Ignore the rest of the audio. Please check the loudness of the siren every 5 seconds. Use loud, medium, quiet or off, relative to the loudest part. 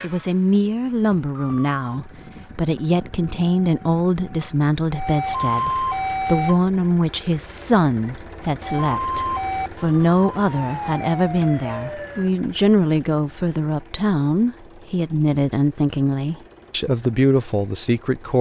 quiet, loud, medium, off.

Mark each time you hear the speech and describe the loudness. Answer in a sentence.
You can hear the speech from 0.0 to 18.3 s, at a steady volume.